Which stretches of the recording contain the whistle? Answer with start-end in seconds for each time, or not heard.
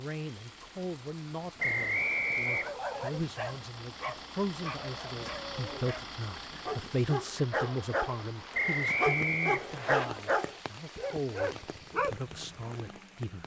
1.6-2.8, 8.5-10.1.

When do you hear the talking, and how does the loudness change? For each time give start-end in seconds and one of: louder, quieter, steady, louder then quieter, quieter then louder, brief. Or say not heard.
0.0-13.4 louder then quieter.